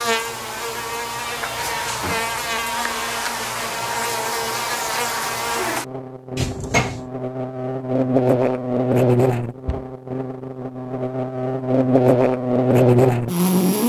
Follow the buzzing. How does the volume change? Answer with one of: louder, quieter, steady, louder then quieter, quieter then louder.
louder.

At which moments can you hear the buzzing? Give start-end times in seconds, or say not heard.
0.0-13.8.